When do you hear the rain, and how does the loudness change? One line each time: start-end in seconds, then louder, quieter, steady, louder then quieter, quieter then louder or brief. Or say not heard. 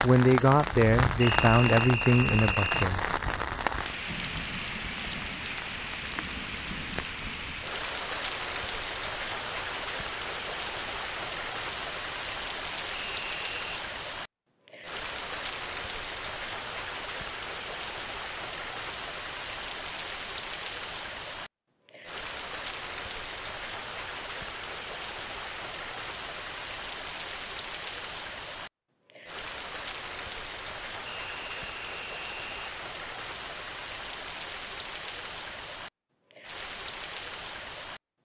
0.0-38.0 quieter.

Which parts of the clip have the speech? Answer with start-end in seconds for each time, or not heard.
0.0-3.1.